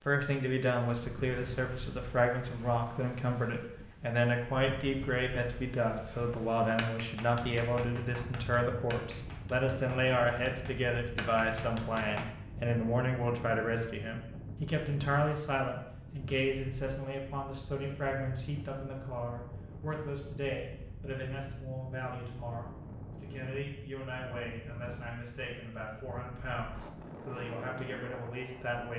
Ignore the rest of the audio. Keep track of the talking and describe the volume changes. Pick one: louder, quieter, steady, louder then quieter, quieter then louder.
quieter.